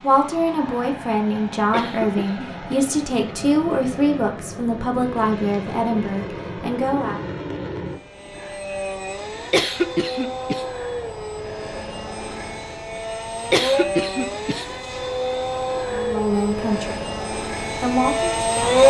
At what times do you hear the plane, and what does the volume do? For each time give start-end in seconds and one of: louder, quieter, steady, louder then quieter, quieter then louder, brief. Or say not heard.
0.0-18.8 louder.